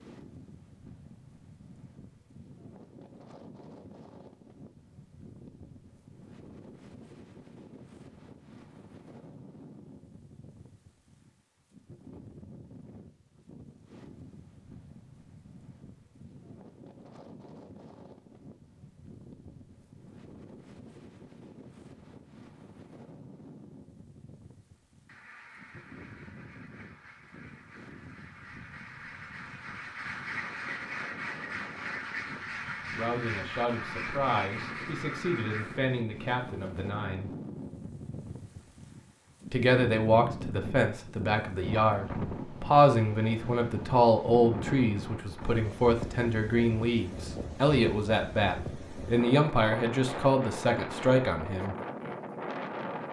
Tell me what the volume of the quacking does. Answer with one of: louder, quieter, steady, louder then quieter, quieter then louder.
louder.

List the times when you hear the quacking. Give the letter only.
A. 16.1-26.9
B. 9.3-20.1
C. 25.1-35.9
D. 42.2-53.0
C.